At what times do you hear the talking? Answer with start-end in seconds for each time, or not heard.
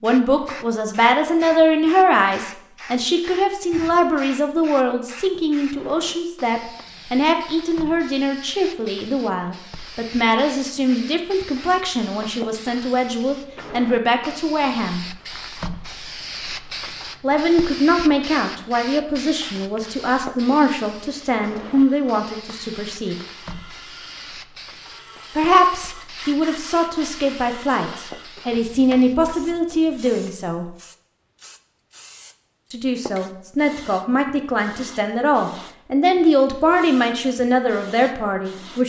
0.0-15.1, 17.2-23.1, 25.4-30.7, 32.7-38.8.